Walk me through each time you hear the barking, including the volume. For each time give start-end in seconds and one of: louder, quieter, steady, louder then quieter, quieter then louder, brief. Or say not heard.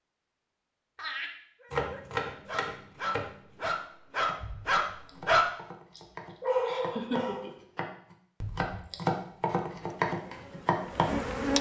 1.6-7.5 louder then quieter.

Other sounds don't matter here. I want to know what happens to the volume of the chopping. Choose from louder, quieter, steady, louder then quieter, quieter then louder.
quieter then louder.